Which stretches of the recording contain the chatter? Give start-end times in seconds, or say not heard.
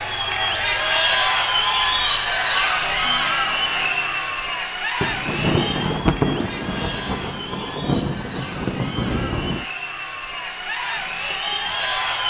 0.0-12.2.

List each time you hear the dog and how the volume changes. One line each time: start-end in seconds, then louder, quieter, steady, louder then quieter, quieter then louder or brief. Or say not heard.
not heard.